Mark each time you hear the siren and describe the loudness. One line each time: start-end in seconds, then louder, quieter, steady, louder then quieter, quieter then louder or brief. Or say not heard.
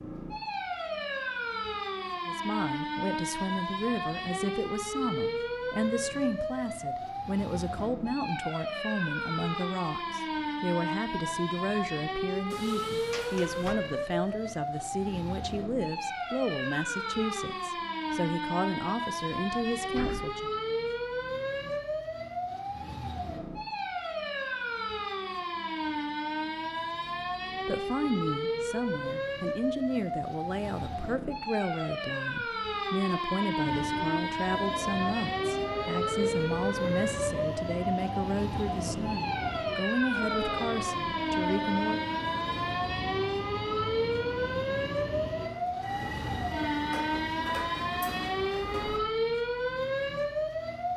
0.0-50.9 steady.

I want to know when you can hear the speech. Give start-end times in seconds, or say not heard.
2.2-20.5, 27.6-42.0.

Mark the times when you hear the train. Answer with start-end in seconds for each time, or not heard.
33.6-49.0.